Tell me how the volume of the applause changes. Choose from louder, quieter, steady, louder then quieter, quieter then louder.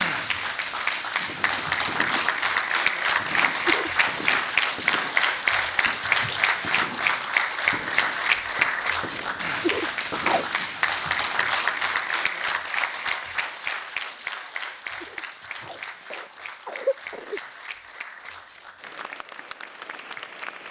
quieter.